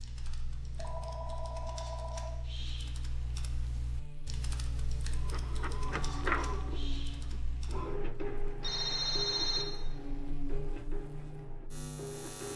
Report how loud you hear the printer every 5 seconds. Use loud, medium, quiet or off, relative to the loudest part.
off, loud, medium.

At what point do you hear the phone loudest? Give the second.
9 s.